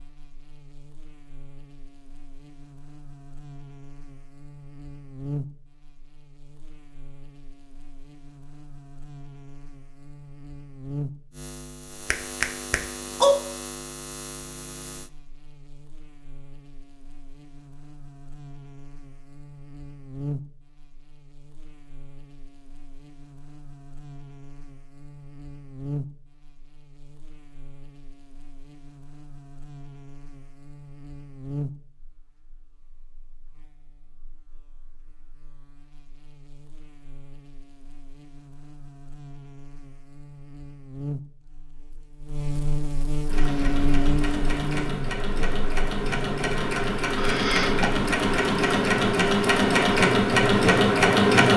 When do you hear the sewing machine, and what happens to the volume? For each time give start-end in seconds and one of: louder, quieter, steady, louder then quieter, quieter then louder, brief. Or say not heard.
43.2-51.5 louder.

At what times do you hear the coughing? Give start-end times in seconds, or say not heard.
47.1-47.9.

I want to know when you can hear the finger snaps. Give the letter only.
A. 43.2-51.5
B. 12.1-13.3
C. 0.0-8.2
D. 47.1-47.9
B.